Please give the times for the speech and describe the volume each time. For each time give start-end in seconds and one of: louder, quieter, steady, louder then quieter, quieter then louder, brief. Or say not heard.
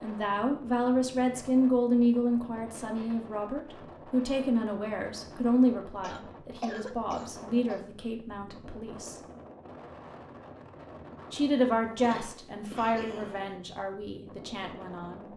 0.0-9.2 quieter
11.3-15.3 quieter.